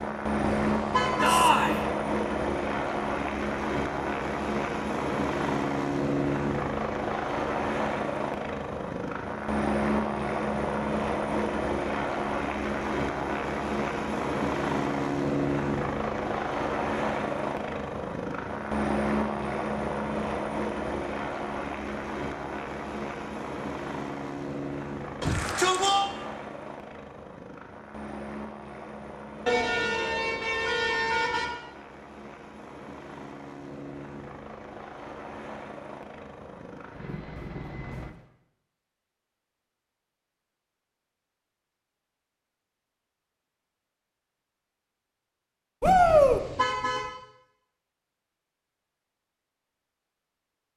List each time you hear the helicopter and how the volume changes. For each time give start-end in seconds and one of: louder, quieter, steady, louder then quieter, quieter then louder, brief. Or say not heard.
0.0-38.1 quieter.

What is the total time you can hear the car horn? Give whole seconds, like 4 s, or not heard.
4 s.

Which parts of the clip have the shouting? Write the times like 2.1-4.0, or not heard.
1.2-1.8, 25.2-26.1, 45.8-46.4.